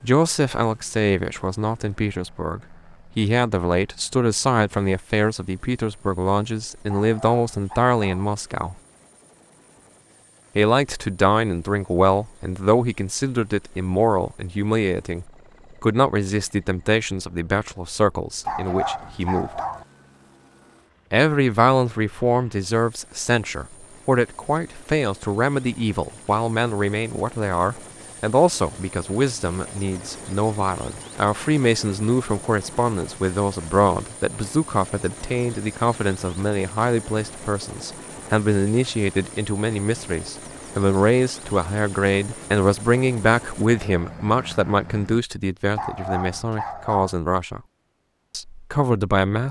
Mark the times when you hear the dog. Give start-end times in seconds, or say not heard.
6.8-8.3, 18.4-19.9, 45.8-47.1.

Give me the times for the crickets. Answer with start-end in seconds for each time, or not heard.
not heard.